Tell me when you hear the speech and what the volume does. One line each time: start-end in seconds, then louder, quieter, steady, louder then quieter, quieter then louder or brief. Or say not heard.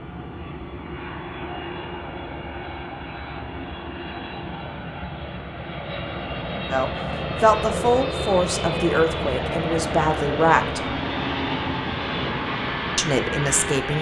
6.7-10.9 quieter then louder
12.9-13.9 brief.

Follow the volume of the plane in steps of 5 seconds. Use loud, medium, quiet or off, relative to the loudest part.
medium, loud, loud.